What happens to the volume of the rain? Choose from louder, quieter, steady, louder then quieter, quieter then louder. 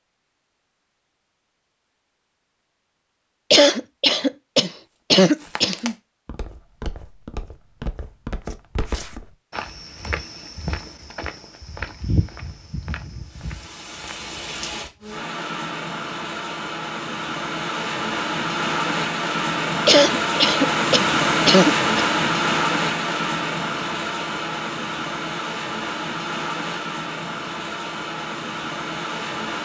louder then quieter.